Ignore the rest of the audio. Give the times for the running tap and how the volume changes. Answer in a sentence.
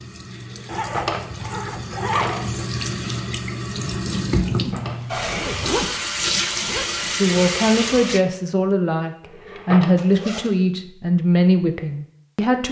You can hear the running tap from 0.0 to 8.2 s, getting louder.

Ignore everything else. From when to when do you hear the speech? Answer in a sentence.
You can hear the speech from 7.2 to 12.6 s.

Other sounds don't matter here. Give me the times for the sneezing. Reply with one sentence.
The sneezing can't be heard in this clip.